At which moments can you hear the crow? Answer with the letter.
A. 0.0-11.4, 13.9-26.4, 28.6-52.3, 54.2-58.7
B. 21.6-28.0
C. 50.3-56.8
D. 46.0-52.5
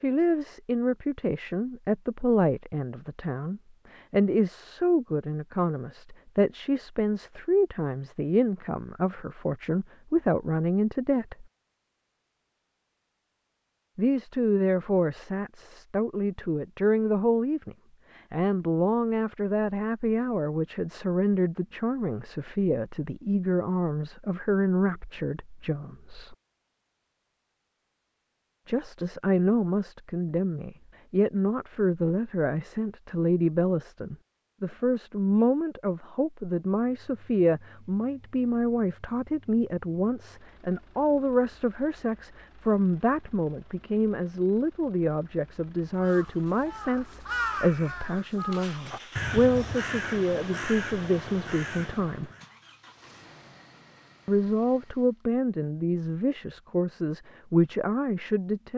D.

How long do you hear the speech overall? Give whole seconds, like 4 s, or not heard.
52 s.